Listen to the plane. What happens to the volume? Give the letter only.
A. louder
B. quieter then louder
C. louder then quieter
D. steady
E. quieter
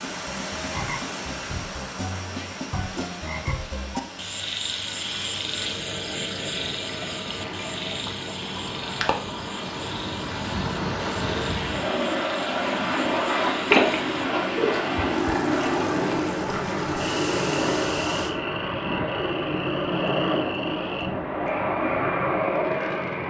A.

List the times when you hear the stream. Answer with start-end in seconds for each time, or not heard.
0.0-18.4.